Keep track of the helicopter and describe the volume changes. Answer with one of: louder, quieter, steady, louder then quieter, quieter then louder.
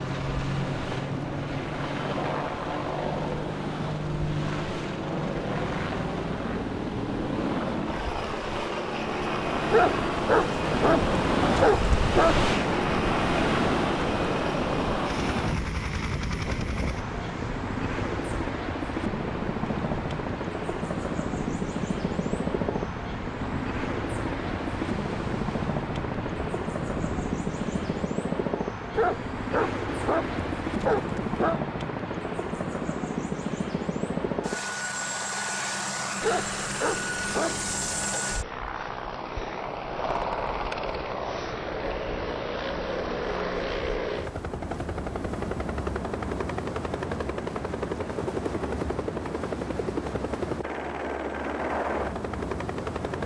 steady.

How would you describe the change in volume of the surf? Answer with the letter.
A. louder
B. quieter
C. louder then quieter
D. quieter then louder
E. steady
C.